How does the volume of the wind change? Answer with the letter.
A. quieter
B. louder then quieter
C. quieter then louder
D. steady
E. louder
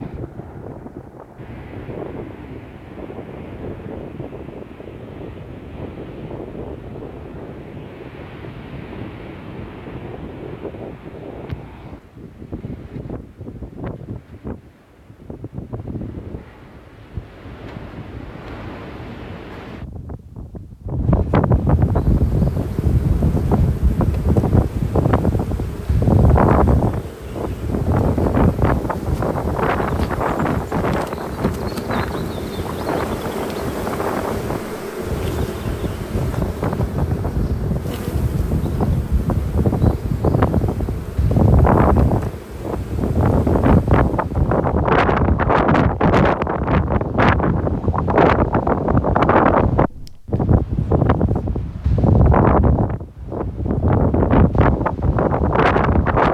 E.